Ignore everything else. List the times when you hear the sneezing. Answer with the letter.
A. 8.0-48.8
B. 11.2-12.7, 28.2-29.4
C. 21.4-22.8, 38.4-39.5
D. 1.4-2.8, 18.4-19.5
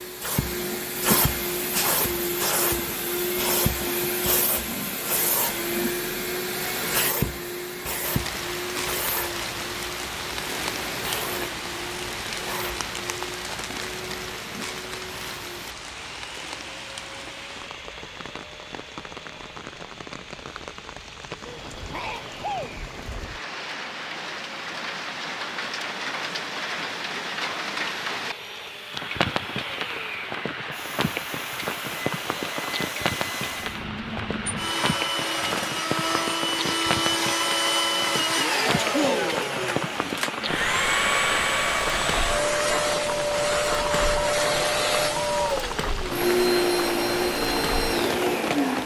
C.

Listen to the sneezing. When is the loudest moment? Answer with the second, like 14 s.
39 s.